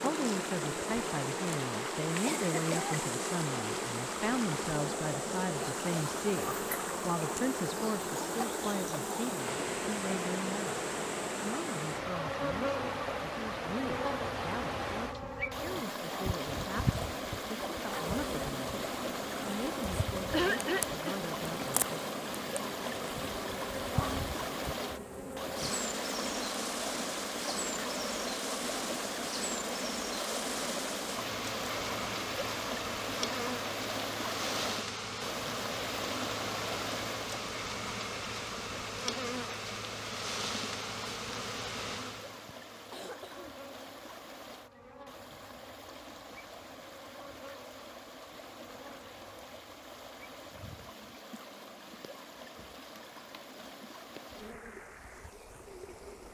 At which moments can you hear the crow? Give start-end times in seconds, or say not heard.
not heard.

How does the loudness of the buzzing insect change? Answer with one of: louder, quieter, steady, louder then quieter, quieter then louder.
quieter.